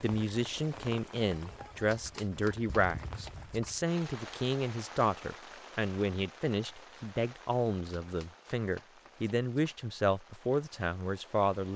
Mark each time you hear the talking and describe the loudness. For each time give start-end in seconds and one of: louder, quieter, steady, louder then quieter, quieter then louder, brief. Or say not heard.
0.0-11.7 steady.